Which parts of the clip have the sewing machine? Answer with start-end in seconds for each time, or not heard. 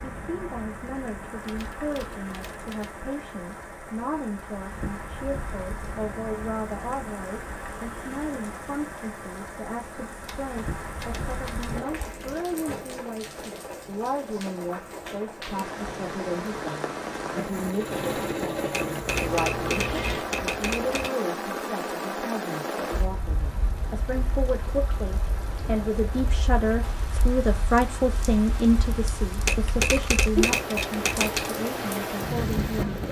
16.6-20.2.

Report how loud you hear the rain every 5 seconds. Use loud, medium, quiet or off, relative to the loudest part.
medium, medium, medium, loud, loud, medium, loud.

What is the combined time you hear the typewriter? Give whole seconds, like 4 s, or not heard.
8 s.